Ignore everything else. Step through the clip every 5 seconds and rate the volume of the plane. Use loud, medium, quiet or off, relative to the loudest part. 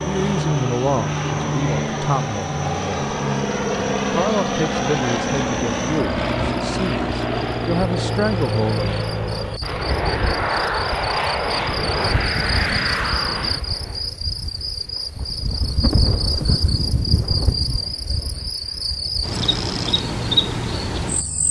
loud, loud, loud, off, off.